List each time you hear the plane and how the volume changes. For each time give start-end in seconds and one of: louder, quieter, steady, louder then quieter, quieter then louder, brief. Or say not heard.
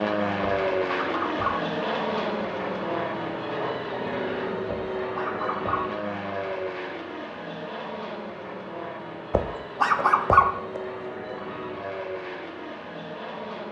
0.0-13.6 quieter.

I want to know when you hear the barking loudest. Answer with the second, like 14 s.
10 s.